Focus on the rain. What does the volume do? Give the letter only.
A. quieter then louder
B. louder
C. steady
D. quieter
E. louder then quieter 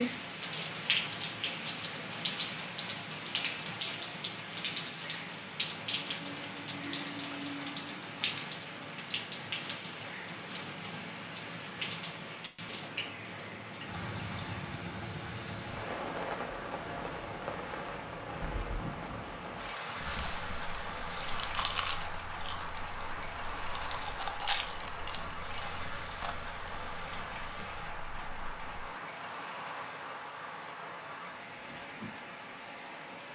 D.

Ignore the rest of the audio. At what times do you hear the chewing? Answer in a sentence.
The chewing can be heard from 20.0 to 28.9 s.